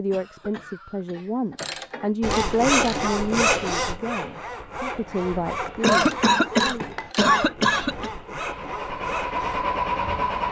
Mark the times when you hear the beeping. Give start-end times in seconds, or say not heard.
not heard.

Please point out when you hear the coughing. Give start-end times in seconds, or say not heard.
0.1-1.3, 5.8-8.1.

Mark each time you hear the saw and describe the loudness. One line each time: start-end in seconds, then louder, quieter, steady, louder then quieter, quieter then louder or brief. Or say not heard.
2.2-9.7 quieter.